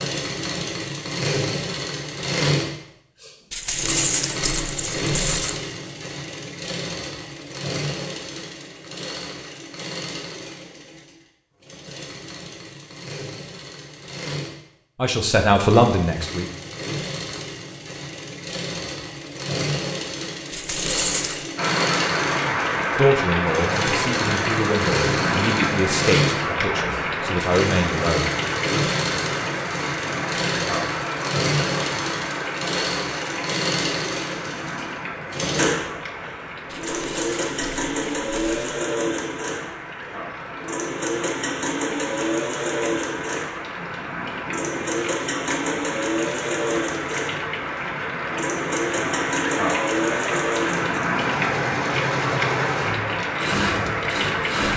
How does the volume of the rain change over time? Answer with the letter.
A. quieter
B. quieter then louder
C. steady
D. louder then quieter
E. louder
B.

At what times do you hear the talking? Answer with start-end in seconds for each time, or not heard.
14.9-16.5, 22.9-28.3.